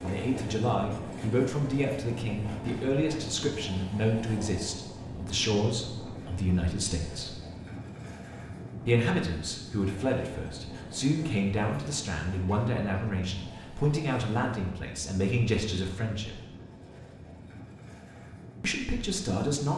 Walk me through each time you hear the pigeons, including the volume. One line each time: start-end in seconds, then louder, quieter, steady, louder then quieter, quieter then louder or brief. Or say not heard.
not heard.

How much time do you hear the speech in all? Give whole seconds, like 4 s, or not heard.
16 s.